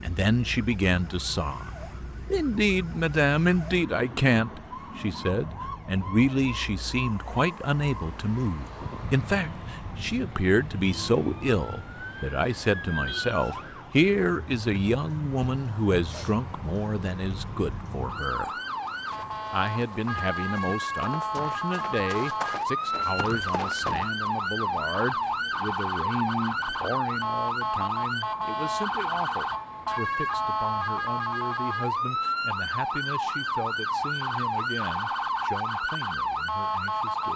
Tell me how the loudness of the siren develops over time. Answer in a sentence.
The volume of the siren goes up.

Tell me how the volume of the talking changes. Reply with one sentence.
The volume of the talking goes down.